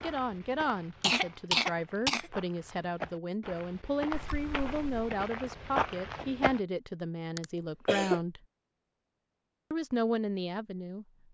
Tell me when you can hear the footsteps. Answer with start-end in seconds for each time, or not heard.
0.0-6.6.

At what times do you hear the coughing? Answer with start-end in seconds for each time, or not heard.
1.0-2.3, 7.3-8.2.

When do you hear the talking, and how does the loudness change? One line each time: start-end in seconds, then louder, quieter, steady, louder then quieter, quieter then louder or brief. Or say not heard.
0.0-8.4 steady
9.7-11.1 brief.